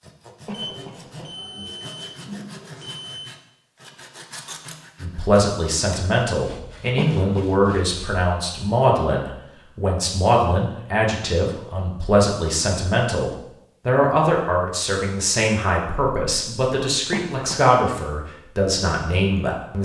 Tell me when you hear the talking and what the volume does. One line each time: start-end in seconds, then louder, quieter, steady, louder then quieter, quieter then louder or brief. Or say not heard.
5.0-19.8 steady.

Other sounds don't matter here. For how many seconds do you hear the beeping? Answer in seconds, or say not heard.
3 s.